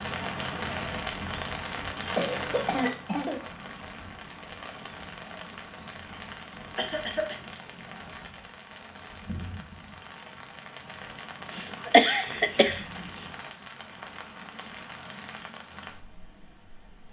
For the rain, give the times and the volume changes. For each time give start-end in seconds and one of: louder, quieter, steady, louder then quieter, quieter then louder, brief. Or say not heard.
0.0-17.0 quieter.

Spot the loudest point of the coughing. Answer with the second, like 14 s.
12 s.